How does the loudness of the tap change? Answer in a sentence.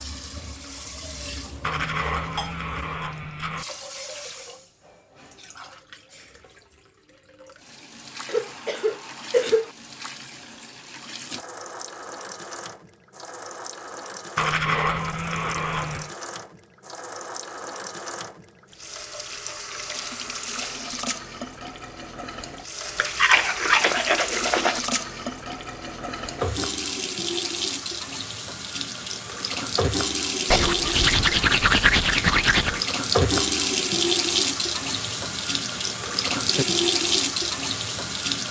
The loudness of the tap goes up.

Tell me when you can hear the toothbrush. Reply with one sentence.
You can hear the toothbrush from 1.6 to 3.6 s, from 14.3 to 16.1 s, from 22.9 to 24.8 s and from 30.5 to 32.8 s.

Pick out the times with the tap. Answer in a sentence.
You can hear the tap from 0.0 to 38.4 s.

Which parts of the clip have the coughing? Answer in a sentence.
The coughing can be heard from 8.2 to 9.7 s.